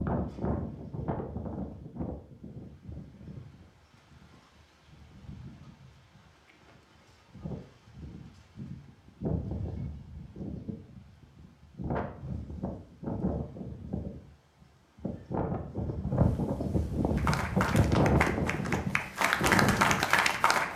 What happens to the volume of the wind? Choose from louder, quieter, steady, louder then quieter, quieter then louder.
quieter then louder.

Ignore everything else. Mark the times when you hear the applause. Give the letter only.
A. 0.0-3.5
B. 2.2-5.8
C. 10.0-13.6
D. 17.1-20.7
D.